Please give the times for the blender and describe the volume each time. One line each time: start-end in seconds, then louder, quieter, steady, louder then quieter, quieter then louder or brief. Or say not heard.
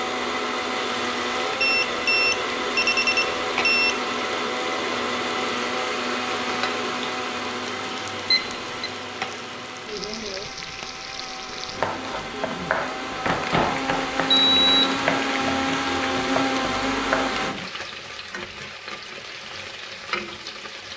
0.0-17.6 quieter then louder.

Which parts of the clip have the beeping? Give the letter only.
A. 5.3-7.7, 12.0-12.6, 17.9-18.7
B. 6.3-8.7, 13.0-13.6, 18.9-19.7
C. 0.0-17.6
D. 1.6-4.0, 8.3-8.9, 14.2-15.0
D.